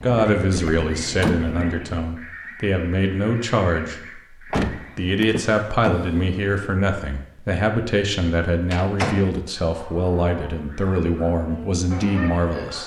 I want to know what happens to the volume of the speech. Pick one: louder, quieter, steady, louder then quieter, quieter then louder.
steady.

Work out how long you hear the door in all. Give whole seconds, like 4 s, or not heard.
4 s.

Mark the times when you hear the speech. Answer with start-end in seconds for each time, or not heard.
0.0-4.2, 5.0-12.8.